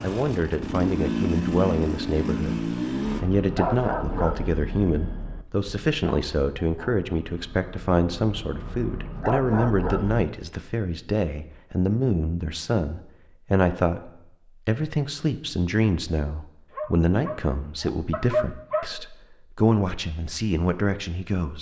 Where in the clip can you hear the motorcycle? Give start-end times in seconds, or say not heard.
0.0-4.2.